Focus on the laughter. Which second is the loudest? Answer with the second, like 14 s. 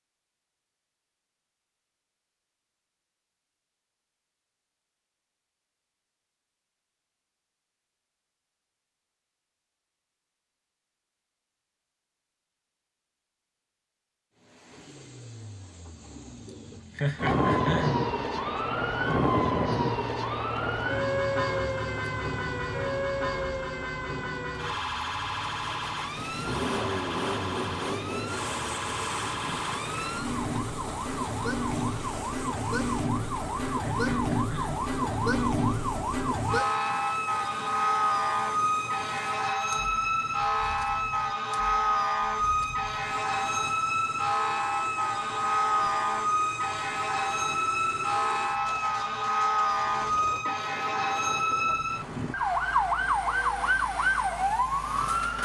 17 s.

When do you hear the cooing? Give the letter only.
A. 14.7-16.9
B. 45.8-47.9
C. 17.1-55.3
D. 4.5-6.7
A.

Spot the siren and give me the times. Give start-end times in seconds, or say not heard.
17.1-55.3.